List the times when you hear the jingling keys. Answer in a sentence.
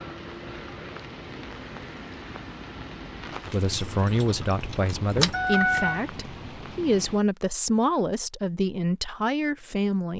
The jingling keys can be heard from 3.5 to 6.0 s.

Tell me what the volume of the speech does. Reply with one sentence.
The loudness of the speech stays about the same.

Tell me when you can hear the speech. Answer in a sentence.
You can hear the speech from 3.5 to 10.1 s.